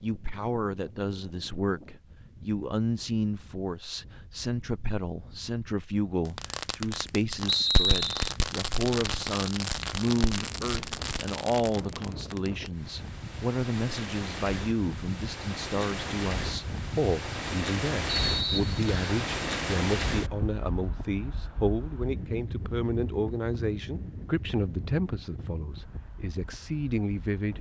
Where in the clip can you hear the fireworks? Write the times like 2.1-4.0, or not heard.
6.3-12.7.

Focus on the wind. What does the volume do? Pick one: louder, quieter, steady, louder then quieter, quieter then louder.
louder then quieter.